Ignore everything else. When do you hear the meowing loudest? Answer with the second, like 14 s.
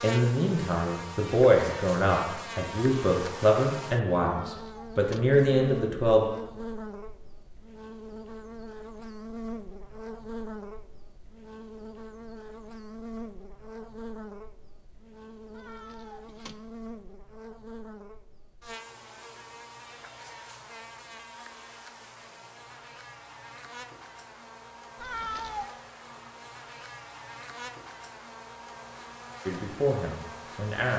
25 s.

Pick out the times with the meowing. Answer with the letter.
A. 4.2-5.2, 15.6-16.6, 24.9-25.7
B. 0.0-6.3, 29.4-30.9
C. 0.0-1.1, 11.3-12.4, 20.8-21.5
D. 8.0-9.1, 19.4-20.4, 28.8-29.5
A.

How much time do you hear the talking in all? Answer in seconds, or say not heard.
8 s.